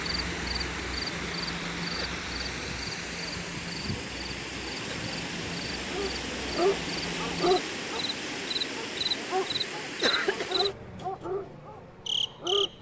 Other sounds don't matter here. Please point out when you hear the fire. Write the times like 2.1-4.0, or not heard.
not heard.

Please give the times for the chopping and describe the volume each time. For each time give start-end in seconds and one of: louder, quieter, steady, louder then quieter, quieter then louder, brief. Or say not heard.
not heard.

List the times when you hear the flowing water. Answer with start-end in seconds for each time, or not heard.
0.0-10.8.